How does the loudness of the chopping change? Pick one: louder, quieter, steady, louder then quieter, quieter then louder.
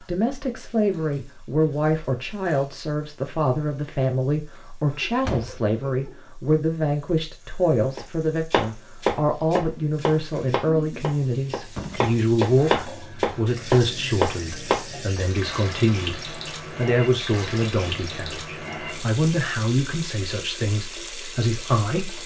quieter then louder.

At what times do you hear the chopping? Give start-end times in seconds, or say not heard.
8.0-14.8.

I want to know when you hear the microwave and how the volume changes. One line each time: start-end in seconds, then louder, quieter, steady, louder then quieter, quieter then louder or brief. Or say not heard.
not heard.